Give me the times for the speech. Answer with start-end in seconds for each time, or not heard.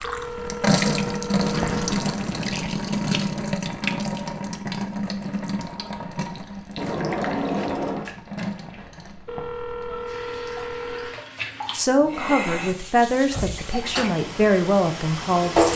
11.7-15.7.